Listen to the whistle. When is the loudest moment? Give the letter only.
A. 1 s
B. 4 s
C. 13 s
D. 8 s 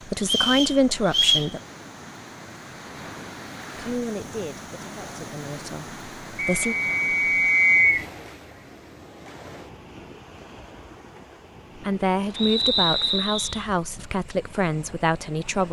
D.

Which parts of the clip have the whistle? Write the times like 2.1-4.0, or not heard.
0.2-1.5, 6.3-8.1, 12.3-13.7.